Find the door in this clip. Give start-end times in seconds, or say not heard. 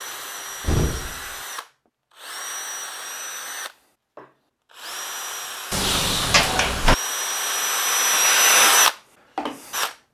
0.1-1.3, 5.7-7.0.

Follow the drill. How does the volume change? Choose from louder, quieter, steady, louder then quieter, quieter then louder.
louder.